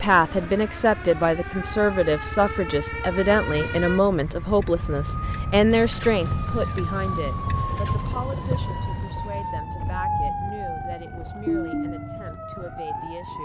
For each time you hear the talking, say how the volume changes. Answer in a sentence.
The talking can be heard from 0.0 to 13.4 s, getting quieter.